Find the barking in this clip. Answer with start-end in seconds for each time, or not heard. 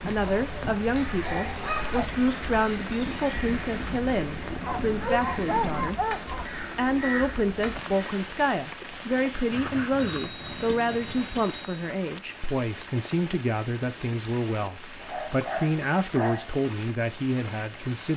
0.2-2.1, 4.6-6.5, 9.5-11.3, 15.0-16.6.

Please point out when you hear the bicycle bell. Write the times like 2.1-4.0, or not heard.
0.6-2.5, 10.1-11.9.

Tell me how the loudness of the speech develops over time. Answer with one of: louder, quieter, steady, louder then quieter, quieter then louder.
steady.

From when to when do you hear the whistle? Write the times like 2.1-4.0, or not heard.
not heard.